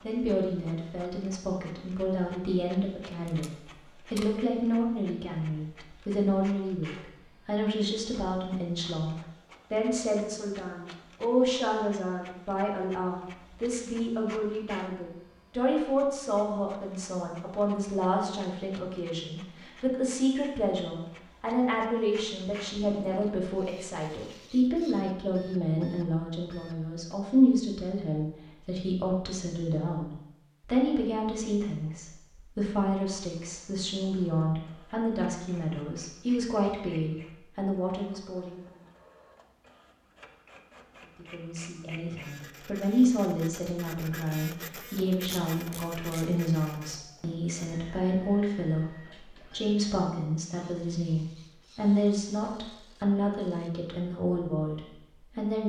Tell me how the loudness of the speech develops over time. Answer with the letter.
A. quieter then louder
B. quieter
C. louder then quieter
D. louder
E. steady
E.